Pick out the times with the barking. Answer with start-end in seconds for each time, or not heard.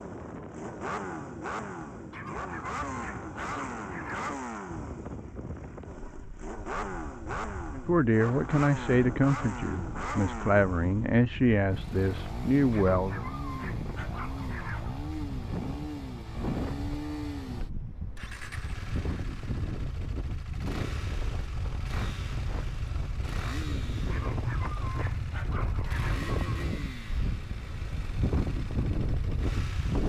2.1-4.3, 12.7-14.9, 24.1-26.1.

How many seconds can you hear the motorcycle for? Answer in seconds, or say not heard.
30 s.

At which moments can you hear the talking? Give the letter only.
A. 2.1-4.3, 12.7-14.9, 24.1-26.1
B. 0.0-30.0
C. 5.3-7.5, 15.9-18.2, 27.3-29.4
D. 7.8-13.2
D.